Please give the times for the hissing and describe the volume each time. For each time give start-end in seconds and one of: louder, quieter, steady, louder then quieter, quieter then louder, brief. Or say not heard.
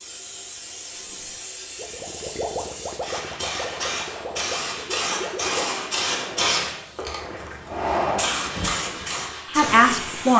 0.0-10.3 louder.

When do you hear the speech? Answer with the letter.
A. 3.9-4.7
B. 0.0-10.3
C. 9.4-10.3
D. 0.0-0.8
C.